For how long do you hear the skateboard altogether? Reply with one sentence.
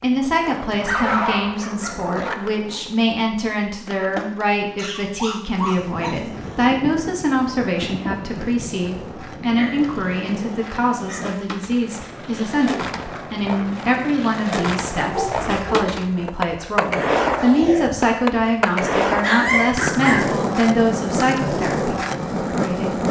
The skateboard can be heard for 23 seconds in total.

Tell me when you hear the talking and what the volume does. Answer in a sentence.
The talking can be heard from 0.0 to 22.9 s, at a steady volume.